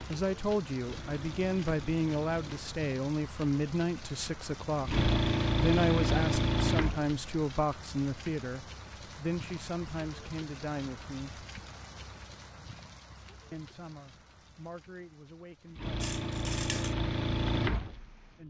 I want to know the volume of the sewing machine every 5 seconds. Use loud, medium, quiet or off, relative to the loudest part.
quiet, loud, off, medium.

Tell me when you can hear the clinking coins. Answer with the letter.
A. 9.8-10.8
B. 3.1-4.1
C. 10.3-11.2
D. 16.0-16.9
D.